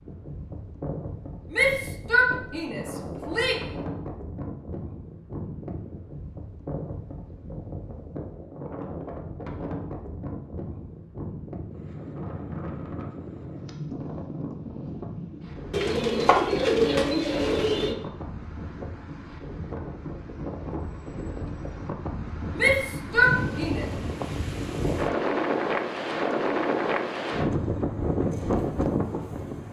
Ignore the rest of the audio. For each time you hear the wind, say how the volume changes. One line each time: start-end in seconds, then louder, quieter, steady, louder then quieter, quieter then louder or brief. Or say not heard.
0.0-29.6 louder.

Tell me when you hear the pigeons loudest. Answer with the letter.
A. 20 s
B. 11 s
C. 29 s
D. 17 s
D.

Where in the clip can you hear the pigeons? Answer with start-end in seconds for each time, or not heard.
15.7-17.9.